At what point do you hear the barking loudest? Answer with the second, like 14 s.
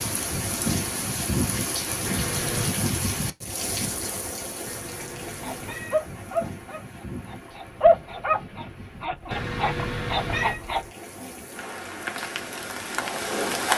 8 s.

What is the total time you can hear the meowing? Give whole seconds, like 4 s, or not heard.
3 s.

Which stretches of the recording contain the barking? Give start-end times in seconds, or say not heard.
5.5-10.8.